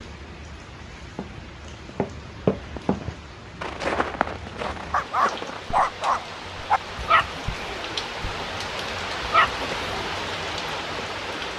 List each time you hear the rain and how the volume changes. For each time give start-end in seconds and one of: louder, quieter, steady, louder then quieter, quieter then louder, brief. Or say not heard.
0.0-11.5 louder.